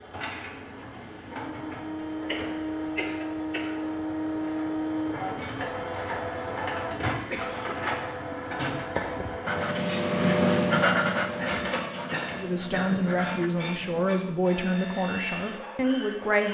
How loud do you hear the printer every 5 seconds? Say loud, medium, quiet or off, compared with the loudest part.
loud, loud, medium, medium.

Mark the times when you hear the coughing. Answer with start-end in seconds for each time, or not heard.
2.2-3.8, 7.3-8.1, 11.3-13.1.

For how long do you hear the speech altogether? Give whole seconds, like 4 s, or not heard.
4 s.